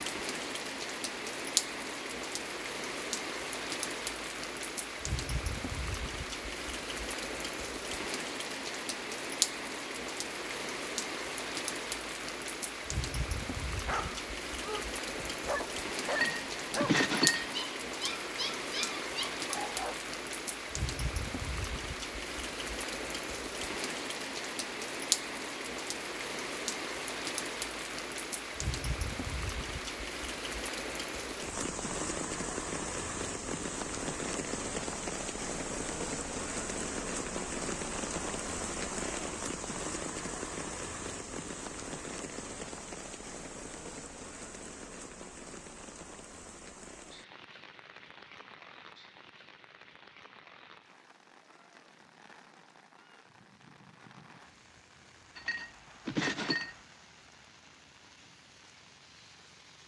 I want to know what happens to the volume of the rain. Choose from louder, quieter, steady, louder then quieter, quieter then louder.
quieter.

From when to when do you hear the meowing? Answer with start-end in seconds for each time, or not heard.
not heard.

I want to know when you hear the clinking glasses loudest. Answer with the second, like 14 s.
17 s.